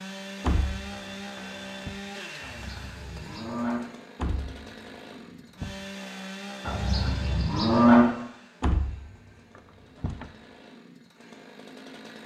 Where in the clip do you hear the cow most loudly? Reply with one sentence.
The volume of the cow peaks at 8 seconds.